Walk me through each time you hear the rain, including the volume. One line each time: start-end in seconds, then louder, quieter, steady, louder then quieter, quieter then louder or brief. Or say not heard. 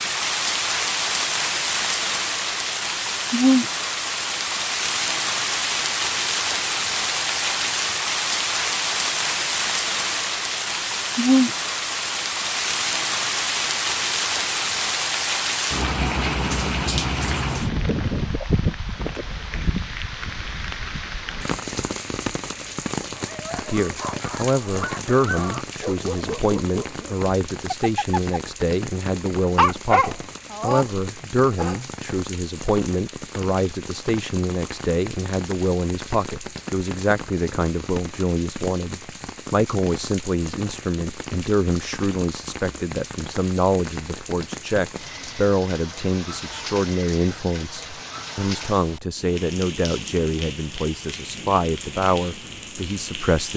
0.0-53.5 quieter.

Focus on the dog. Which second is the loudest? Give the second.
30 s.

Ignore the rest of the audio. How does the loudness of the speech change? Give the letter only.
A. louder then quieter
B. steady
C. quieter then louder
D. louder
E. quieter
B.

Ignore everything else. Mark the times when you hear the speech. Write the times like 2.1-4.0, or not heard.
23.6-53.5.